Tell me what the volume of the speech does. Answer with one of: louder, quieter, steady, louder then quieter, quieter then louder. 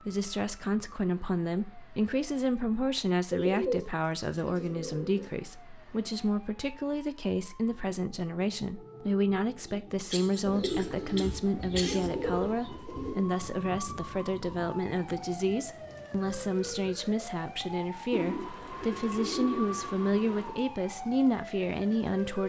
steady.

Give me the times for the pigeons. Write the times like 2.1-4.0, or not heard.
3.3-5.2, 10.4-13.2, 18.1-20.6.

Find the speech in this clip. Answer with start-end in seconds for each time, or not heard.
0.0-22.4.